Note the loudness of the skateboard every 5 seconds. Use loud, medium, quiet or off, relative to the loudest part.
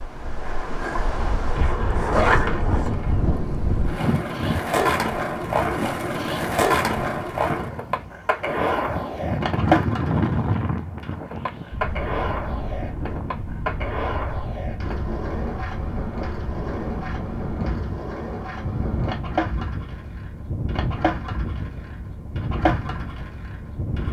loud, loud, medium, medium, medium.